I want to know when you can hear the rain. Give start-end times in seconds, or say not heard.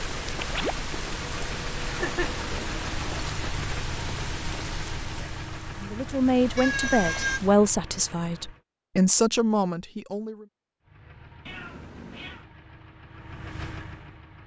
0.0-7.5.